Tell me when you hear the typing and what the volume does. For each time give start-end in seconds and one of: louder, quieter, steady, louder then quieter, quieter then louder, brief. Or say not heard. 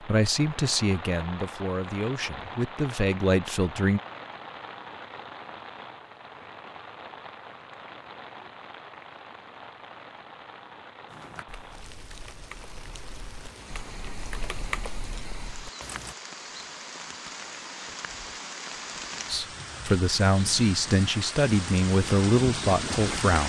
11.1-16.1 louder then quieter.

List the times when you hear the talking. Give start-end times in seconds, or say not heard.
0.0-4.0, 19.2-23.4.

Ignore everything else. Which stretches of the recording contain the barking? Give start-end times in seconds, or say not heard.
not heard.